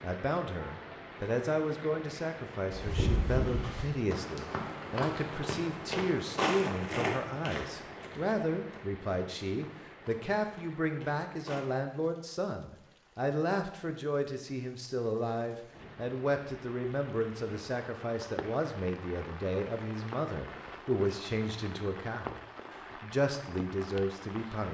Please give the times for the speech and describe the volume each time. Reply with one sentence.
The speech can be heard from 0.0 to 24.6 s, at a steady volume.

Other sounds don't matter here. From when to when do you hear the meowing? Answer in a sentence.
The meowing can't be heard in this clip.